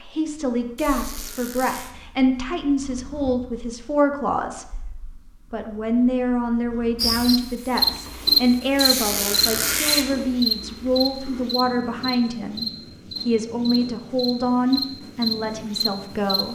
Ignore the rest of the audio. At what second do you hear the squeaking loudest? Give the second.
10 s.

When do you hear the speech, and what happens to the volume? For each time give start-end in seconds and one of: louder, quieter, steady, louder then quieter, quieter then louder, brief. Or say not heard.
0.0-16.5 steady.